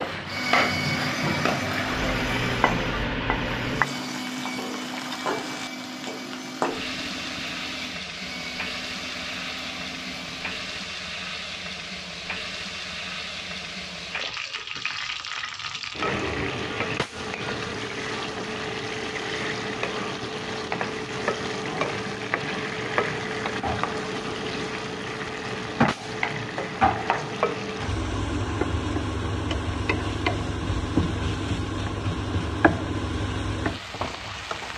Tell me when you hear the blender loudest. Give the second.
1 s.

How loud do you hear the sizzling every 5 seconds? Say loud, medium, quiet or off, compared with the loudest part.
loud, medium, medium, loud, loud, loud, loud.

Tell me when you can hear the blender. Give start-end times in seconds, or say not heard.
0.1-10.8.